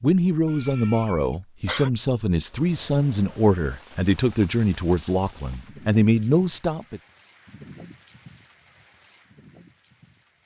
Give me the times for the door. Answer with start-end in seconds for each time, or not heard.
not heard.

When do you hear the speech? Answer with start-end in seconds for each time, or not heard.
0.0-7.0.